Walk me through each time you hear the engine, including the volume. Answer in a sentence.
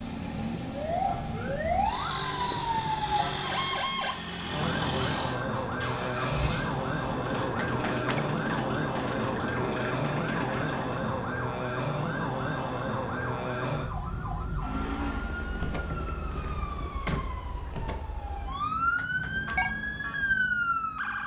The engine can be heard from 0.0 to 11.3 s, at a steady volume.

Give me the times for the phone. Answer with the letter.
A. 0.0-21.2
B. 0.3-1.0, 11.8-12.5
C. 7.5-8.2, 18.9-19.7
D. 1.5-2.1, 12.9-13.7
C.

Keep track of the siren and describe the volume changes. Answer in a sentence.
The loudness of the siren stays about the same.